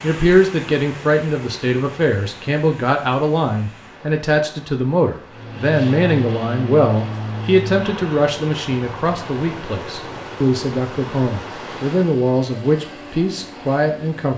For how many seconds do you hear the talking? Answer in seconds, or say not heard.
14 s.